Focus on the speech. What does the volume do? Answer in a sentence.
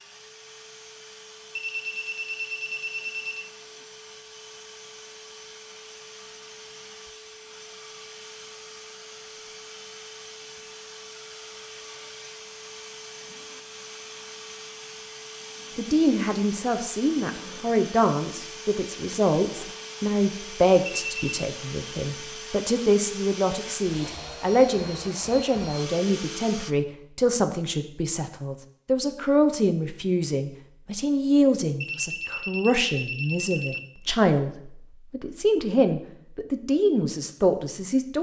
The volume of the speech stays about the same.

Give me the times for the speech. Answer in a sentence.
The speech can be heard from 15.8 to 38.1 s.